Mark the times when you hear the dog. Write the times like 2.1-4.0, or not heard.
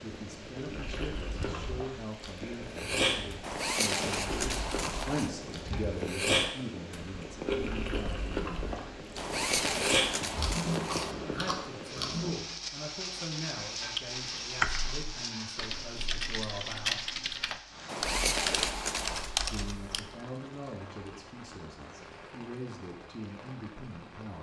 not heard.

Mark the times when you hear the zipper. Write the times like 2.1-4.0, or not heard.
3.4-5.3, 9.2-11.2, 17.9-19.3.